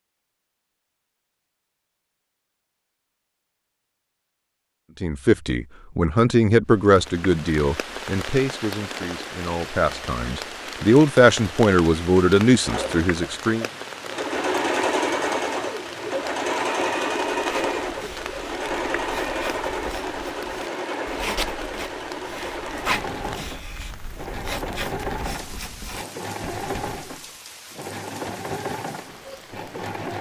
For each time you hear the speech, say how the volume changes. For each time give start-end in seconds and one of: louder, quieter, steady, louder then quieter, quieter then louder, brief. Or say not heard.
5.0-13.7 quieter then louder.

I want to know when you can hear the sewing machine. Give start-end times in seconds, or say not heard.
12.6-30.1.